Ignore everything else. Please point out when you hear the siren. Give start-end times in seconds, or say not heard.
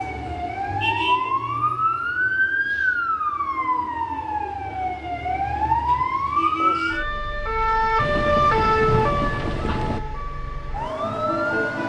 0.0-11.8.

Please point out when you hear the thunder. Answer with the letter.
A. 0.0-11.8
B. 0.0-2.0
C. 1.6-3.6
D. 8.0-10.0
D.